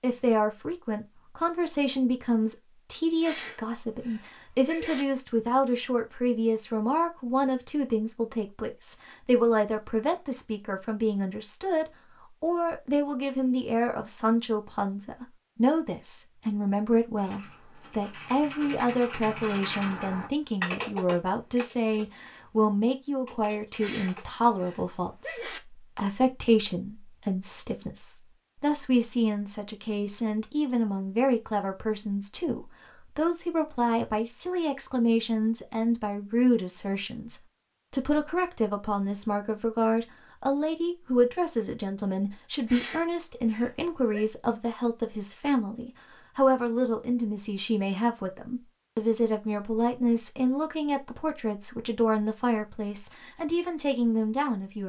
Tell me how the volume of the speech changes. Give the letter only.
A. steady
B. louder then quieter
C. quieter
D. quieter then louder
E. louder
A.